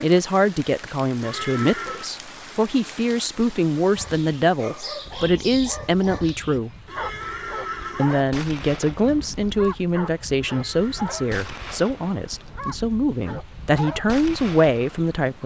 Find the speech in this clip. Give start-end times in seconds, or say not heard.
0.0-6.7, 8.0-15.4.